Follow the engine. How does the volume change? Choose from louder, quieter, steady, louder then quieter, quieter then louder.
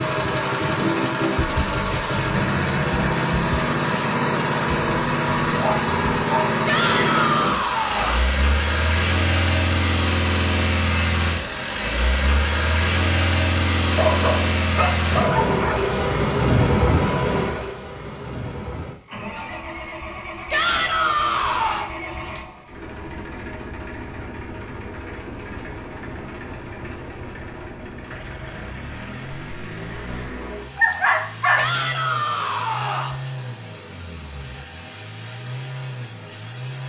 quieter.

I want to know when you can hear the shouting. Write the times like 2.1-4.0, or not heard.
6.7-8.2, 20.5-21.9, 31.6-33.2.